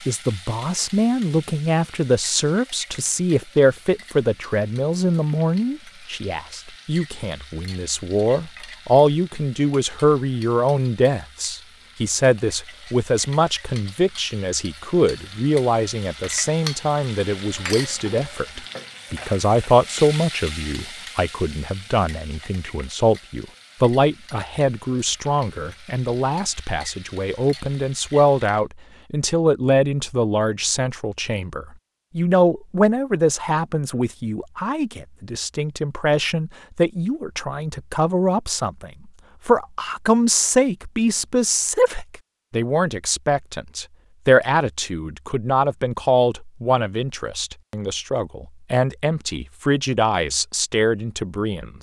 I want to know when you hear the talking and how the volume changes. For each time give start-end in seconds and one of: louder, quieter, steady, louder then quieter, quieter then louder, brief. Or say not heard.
0.1-51.7 steady.